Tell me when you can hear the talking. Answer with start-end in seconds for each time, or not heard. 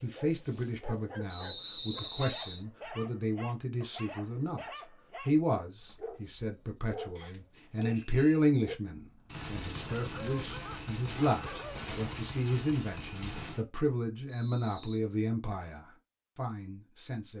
0.0-17.3.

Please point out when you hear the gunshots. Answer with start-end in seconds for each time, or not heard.
9.2-13.7.